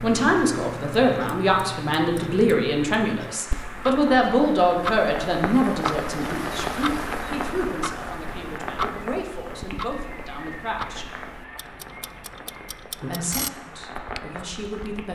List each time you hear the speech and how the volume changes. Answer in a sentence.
The speech can be heard from 0.0 to 11.1 s, getting quieter; and briefly from 12.9 to 15.0 s.